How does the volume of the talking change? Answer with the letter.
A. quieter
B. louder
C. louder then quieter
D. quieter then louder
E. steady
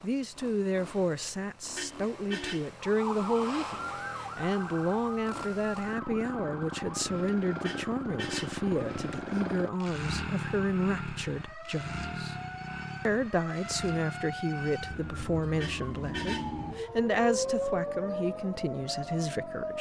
E.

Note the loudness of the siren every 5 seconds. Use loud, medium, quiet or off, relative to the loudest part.
loud, medium, medium, loud.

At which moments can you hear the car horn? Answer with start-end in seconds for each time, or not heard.
1.8-2.7, 7.6-8.7, 15.6-16.6.